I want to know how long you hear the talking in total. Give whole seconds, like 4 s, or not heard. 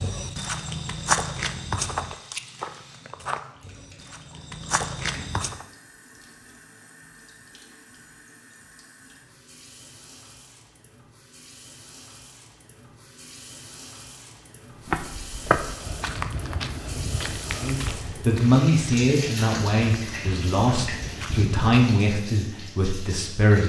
6 s.